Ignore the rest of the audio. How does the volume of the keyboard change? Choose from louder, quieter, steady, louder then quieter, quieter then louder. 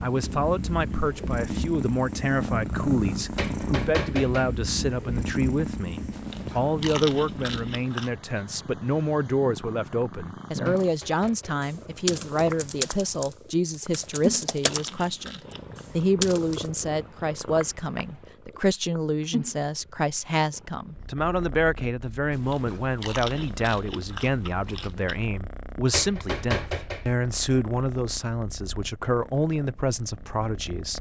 quieter then louder.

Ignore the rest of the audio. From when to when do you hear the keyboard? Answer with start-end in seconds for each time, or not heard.
10.8-16.7.